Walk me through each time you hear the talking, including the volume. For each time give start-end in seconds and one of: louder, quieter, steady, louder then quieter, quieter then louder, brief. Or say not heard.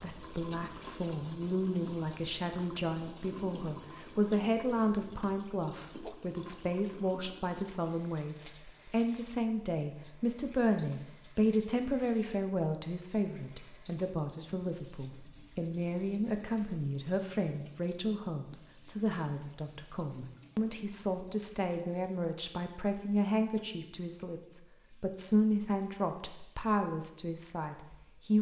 0.0-28.3 steady.